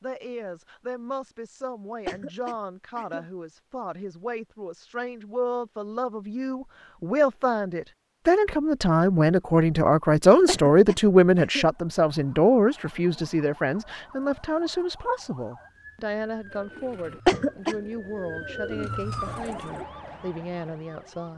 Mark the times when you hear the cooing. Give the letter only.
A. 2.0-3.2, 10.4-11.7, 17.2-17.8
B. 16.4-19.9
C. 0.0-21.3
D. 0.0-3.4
B.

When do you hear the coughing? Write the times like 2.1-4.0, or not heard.
2.0-3.2, 10.4-11.7, 17.2-17.8.